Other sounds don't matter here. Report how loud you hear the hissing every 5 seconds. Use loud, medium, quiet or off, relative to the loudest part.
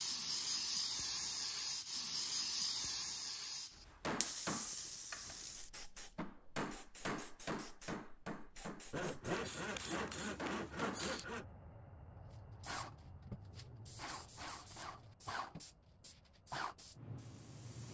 loud, quiet, medium, medium.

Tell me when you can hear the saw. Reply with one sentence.
You can hear the saw from 8.9 to 11.4 s.